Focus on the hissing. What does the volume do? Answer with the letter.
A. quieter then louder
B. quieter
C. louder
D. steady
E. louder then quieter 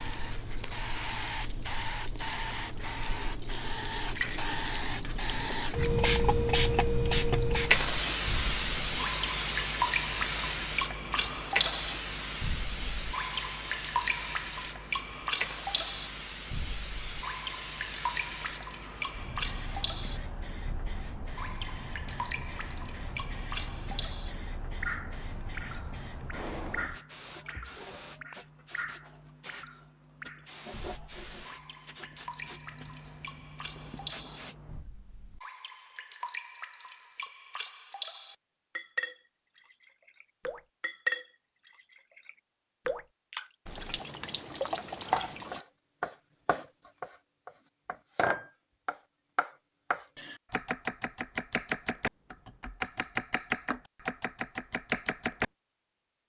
B.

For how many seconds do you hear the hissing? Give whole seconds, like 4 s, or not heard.
35 s.